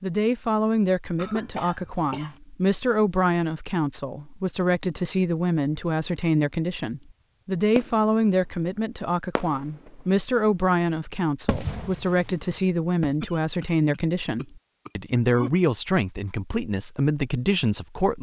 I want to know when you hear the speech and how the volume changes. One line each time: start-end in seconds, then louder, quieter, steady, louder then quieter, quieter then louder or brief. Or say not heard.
0.0-18.1 steady.